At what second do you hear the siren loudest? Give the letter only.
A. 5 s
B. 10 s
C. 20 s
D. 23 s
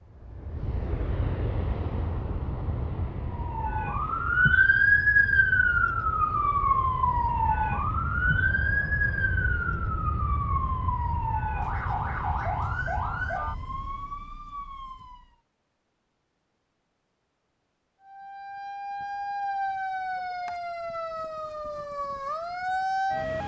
A.